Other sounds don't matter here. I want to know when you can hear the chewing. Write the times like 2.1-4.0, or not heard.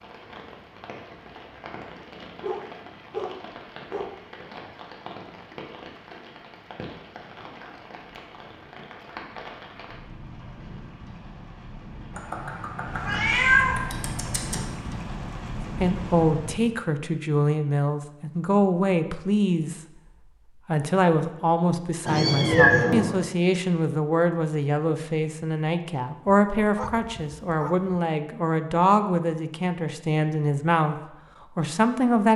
not heard.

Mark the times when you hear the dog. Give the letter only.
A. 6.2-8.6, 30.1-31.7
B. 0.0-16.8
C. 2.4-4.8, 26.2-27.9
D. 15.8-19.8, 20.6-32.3
C.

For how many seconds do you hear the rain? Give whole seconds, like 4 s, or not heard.
17 s.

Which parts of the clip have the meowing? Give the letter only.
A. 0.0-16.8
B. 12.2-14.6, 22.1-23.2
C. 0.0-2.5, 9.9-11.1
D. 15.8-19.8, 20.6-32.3
B.